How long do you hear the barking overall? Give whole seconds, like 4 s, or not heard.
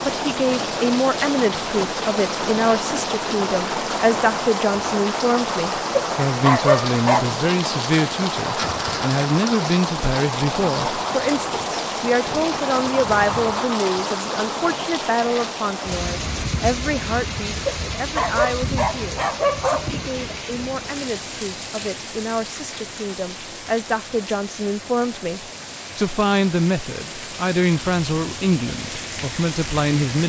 4 s.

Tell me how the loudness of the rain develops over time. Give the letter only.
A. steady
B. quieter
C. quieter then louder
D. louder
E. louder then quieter
B.